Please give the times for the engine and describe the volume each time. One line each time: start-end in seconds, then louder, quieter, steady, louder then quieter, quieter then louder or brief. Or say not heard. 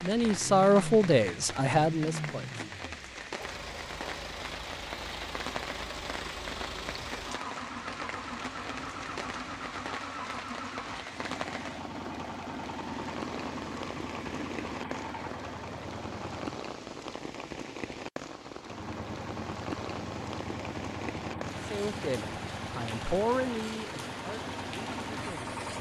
0.0-16.6 steady
18.6-25.7 steady.